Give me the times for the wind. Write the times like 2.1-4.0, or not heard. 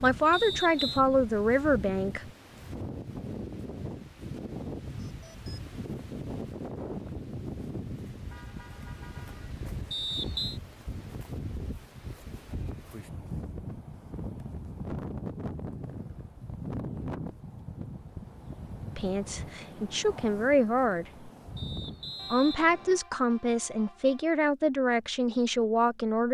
0.0-22.4.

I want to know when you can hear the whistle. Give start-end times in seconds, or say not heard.
0.3-1.0, 9.9-10.6, 21.6-23.0.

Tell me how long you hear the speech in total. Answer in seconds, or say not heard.
8 s.